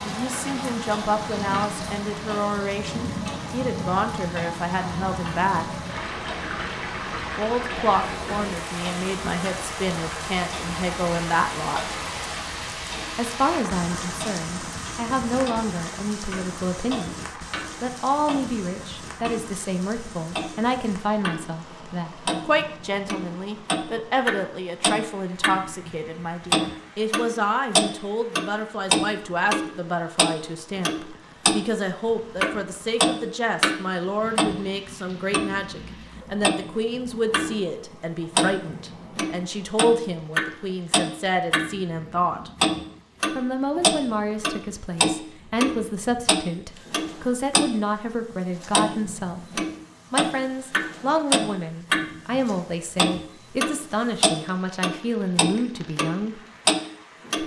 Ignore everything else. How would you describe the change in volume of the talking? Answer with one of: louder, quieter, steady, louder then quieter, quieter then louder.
steady.